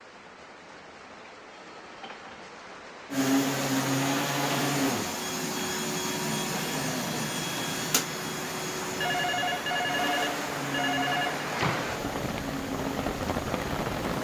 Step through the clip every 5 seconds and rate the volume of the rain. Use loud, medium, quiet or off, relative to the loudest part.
quiet, medium, loud.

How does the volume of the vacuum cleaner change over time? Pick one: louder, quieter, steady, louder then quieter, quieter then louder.
quieter.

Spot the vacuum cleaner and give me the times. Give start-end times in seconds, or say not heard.
3.1-14.1.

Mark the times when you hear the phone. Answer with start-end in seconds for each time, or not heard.
1.5-2.5, 9.0-11.4.